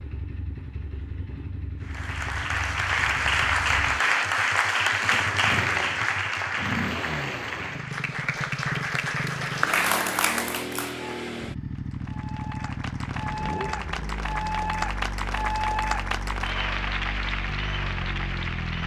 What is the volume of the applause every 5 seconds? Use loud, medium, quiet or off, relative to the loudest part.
loud, loud, medium, medium.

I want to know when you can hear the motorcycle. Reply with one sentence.
The motorcycle can be heard from 0.0 to 18.8 s.